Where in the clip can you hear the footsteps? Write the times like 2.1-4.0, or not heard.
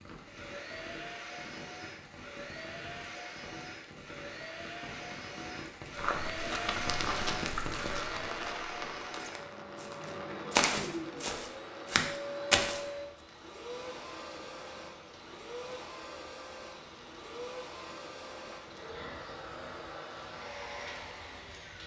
6.0-12.8.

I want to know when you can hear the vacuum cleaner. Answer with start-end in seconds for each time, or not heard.
0.1-21.8.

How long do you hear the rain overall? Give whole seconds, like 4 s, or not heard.
22 s.